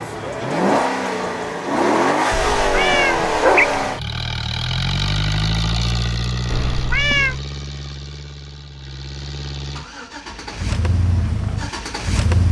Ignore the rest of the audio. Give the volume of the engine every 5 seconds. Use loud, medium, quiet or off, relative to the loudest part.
loud, medium, medium.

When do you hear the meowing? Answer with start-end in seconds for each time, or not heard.
2.3-3.8, 6.5-7.4.